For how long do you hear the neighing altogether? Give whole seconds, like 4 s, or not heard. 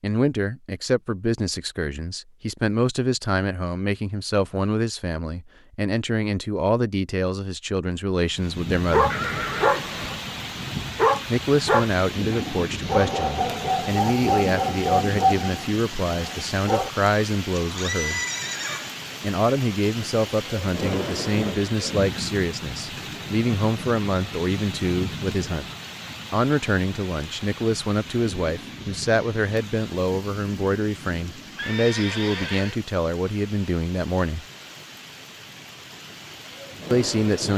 4 s.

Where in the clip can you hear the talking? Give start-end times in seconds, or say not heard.
0.0-9.2, 11.3-18.2, 19.2-25.6, 26.3-34.5, 36.9-37.5.